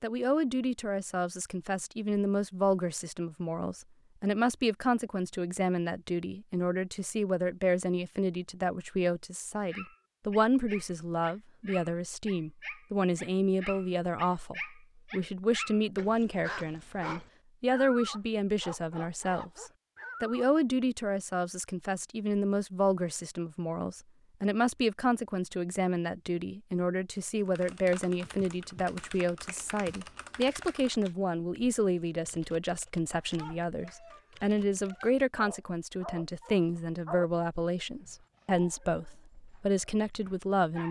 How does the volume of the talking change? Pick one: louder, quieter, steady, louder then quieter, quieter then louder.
steady.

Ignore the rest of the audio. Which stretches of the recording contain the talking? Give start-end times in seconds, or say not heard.
0.0-40.8.